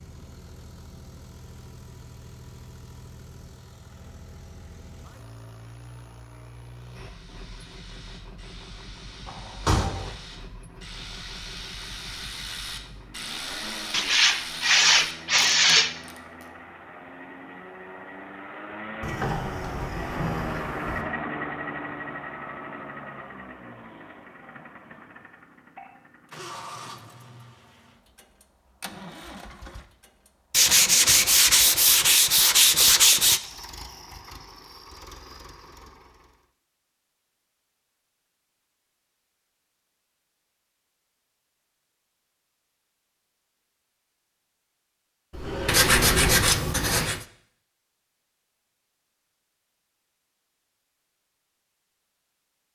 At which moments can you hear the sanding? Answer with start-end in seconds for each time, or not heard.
13.9-15.9, 30.5-33.4, 45.6-47.2.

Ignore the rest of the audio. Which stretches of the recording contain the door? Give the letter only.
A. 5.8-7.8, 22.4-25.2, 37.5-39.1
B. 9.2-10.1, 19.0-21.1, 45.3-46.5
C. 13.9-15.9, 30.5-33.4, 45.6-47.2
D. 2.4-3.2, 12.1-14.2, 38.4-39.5
B.